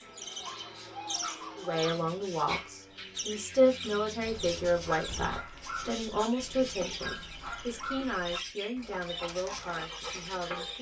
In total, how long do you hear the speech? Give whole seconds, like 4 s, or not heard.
9 s.